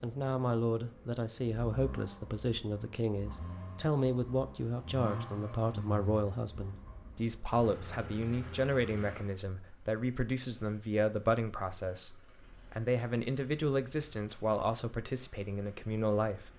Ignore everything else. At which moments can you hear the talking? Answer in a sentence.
You can hear the talking from 0.0 to 16.5 s.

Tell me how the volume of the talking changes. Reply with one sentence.
The volume of the talking stays about the same.